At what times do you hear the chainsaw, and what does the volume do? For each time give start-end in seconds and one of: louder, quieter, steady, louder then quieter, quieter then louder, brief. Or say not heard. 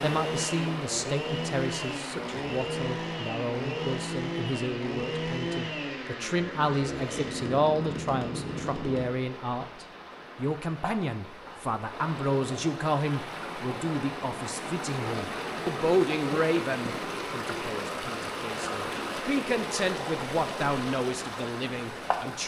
0.0-9.1 steady.